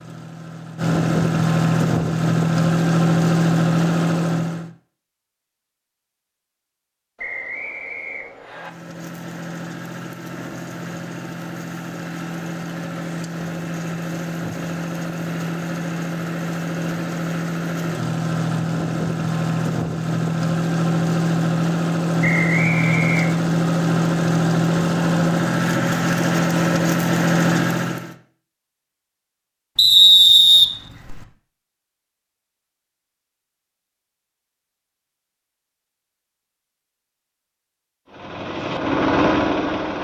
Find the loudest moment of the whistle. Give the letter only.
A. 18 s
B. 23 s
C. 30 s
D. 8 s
C.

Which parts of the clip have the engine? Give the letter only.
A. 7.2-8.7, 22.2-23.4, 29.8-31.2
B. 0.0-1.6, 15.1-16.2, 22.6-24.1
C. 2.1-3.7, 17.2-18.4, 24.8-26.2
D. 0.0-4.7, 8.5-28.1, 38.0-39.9
D.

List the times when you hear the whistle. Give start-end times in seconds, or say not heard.
7.2-8.7, 22.2-23.4, 29.8-31.2.